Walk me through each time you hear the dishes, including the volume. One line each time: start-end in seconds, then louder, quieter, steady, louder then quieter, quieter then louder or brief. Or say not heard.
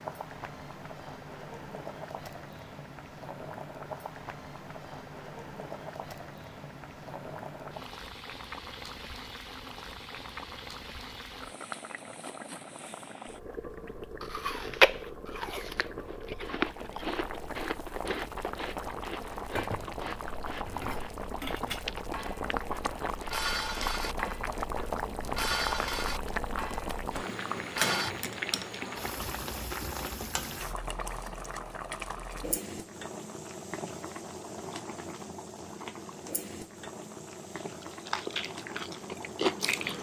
19.5-28.1 louder then quieter.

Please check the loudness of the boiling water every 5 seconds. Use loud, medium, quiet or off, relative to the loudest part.
medium, medium, medium, medium, loud, loud, medium, medium.